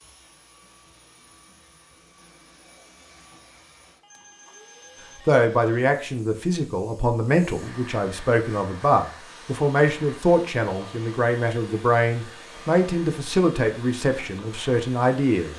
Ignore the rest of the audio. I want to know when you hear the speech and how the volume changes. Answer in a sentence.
The speech can be heard from 5.2 to 15.5 s, at a steady volume.